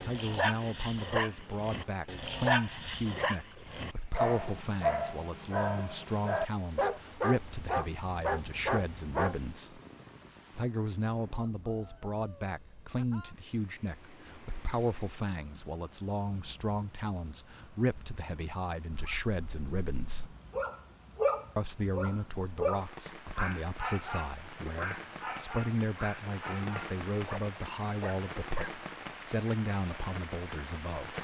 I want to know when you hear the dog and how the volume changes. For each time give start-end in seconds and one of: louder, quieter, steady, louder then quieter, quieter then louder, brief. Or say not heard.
0.0-9.4 steady
18.9-28.8 louder then quieter.